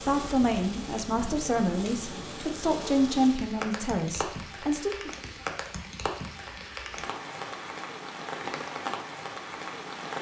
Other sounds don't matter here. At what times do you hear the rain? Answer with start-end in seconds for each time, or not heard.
0.0-10.1.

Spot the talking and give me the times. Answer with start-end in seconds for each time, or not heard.
0.1-5.1.